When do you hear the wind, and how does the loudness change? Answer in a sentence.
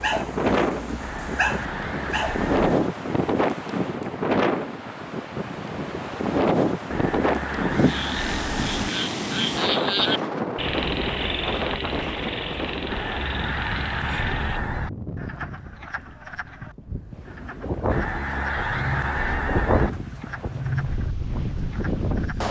The wind can be heard from 0.0 to 22.4 s, getting quieter then louder.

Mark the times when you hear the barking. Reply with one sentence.
The barking can be heard from 0.0 to 2.5 s.